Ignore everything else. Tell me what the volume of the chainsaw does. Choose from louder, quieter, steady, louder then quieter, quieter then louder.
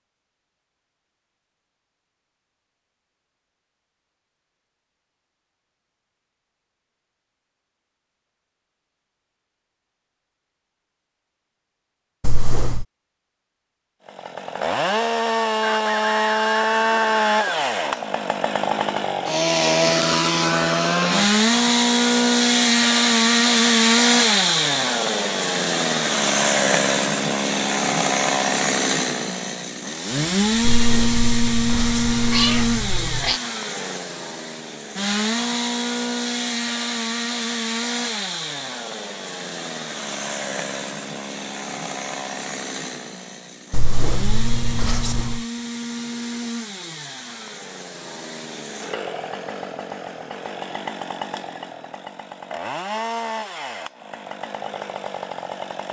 quieter.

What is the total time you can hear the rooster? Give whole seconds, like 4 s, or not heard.
2 s.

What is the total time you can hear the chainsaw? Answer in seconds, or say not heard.
42 s.